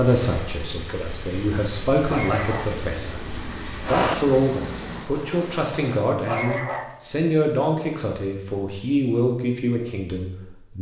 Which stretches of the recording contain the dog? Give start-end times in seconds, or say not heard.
1.9-2.8, 6.1-7.2.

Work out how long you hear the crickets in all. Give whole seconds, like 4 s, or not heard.
6 s.